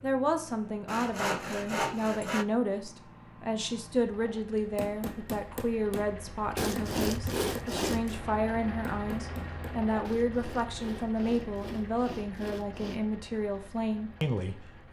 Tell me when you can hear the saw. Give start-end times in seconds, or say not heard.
0.8-2.5, 6.5-8.2, 10.0-13.0.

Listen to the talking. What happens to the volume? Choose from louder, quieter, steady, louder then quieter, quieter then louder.
steady.